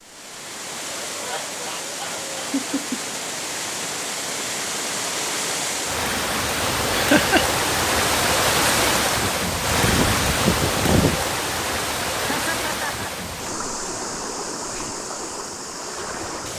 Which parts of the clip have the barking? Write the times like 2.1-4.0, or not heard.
not heard.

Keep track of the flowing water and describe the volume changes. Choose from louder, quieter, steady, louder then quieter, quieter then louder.
louder then quieter.